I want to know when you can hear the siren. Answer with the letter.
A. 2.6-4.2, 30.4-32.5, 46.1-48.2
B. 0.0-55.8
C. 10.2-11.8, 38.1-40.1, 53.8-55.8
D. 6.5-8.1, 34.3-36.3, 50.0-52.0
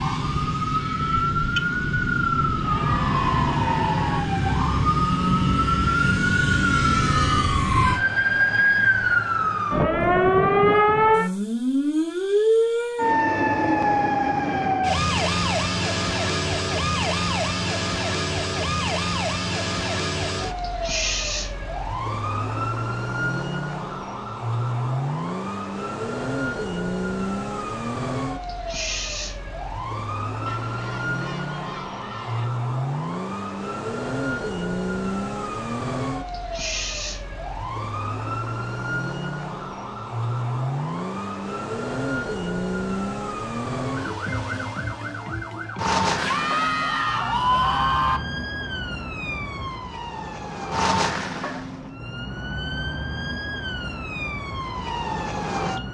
B.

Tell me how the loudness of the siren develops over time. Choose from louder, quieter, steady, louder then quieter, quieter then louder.
quieter.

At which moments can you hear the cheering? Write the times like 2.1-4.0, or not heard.
2.6-4.2, 30.4-32.5, 46.1-48.2.